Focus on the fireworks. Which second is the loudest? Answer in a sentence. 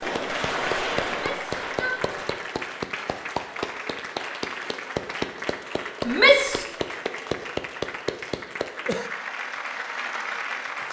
The volume of the fireworks peaks at 1 second.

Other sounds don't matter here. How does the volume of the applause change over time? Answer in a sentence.
The volume of the applause stays about the same.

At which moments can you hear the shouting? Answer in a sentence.
You can hear the shouting from 1.1 to 2.0 s and from 6.0 to 6.7 s.